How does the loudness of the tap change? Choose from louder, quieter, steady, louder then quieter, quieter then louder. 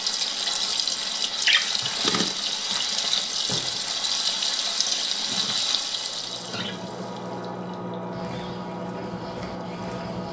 quieter.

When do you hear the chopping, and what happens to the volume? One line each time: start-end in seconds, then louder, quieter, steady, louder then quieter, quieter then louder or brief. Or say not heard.
not heard.